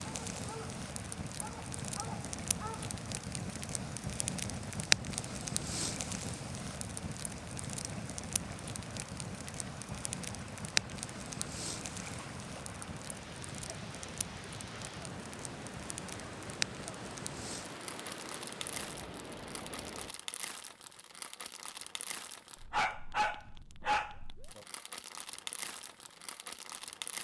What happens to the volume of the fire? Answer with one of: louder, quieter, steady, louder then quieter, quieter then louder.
quieter.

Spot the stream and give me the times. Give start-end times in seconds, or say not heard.
0.0-20.1.